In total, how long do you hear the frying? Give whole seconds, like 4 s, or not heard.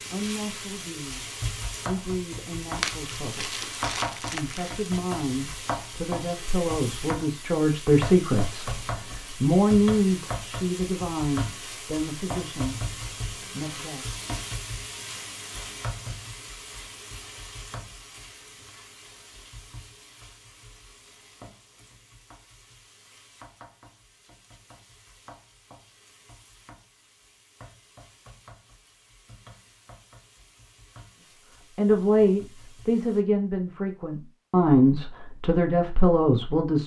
33 s.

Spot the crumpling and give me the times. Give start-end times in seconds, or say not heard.
2.8-4.8.